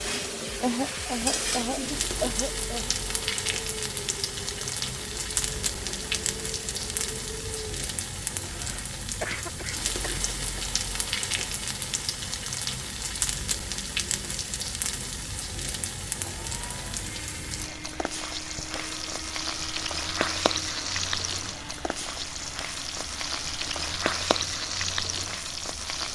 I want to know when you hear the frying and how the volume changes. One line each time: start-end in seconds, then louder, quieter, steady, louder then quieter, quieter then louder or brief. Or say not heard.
0.0-26.1 steady.